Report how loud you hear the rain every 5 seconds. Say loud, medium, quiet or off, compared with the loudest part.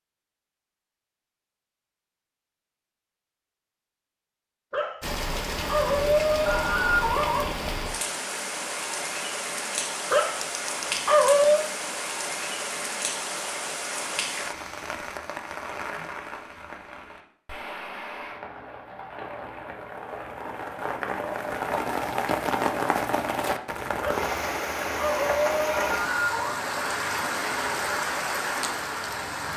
off, loud, loud, medium, loud, loud.